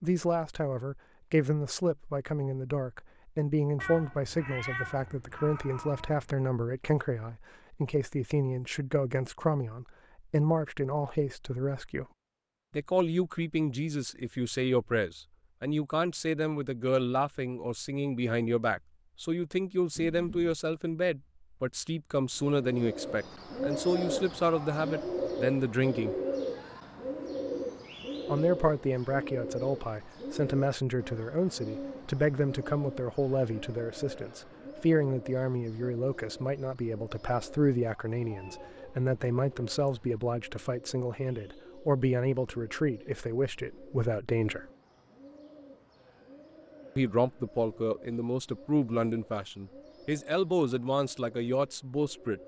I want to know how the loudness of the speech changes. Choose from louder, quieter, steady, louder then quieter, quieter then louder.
steady.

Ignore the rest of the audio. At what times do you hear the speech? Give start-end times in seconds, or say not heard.
0.0-12.1, 12.7-26.1, 28.2-44.6, 47.0-52.4.